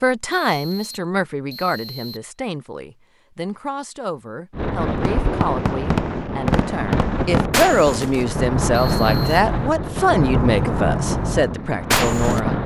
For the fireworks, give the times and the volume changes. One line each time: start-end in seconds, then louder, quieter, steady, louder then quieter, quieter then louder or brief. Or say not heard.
5.0-12.4 steady.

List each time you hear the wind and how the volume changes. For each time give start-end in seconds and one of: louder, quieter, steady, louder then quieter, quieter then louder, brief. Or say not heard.
4.5-12.6 steady.